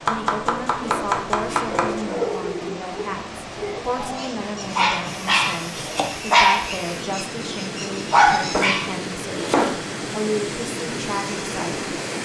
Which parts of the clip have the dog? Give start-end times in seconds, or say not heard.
0.8-8.9.